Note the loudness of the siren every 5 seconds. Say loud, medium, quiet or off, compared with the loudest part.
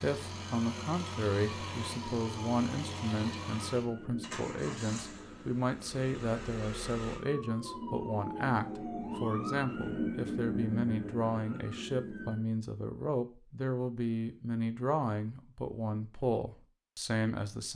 medium, loud, loud, off.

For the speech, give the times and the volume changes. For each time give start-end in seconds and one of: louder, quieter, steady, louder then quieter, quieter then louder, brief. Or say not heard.
0.0-17.7 steady.